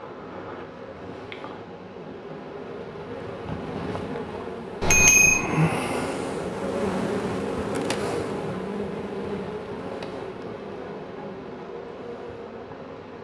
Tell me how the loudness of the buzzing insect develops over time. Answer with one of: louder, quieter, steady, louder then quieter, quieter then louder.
louder then quieter.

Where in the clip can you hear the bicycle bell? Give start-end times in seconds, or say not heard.
4.8-5.5.